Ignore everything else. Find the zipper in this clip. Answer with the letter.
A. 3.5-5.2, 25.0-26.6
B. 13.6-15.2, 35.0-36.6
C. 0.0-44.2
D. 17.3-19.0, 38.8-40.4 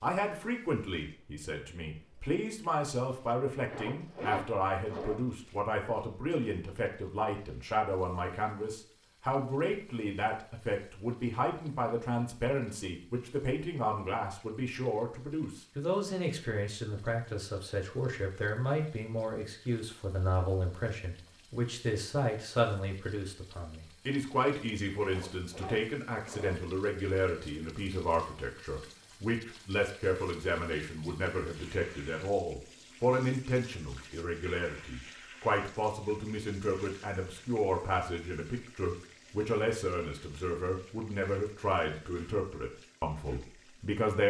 A.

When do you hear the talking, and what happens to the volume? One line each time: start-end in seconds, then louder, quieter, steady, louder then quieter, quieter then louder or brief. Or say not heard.
0.0-44.2 steady.